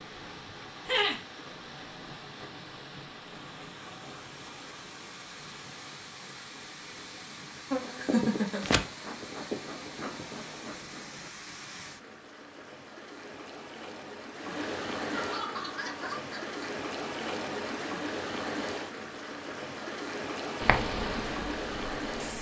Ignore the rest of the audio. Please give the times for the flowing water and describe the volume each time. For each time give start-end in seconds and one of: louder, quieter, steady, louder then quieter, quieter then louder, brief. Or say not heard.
0.0-22.3 louder.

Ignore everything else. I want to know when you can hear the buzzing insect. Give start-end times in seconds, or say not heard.
6.5-11.3, 20.6-22.3.